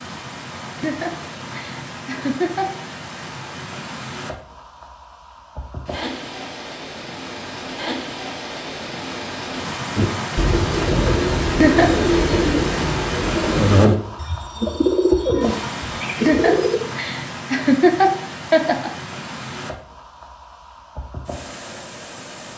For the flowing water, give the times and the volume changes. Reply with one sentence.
You can hear the flowing water from 0.0 to 22.5 s, getting louder then quieter.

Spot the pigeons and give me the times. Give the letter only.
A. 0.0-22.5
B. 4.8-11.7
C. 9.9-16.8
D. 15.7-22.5
C.